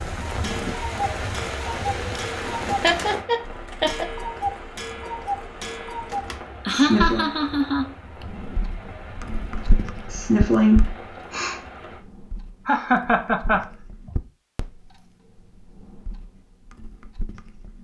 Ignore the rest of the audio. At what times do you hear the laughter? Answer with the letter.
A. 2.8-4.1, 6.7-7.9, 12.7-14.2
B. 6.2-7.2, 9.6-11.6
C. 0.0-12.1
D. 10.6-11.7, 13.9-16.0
A.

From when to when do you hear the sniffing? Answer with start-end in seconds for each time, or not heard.
6.2-7.2, 9.6-11.6.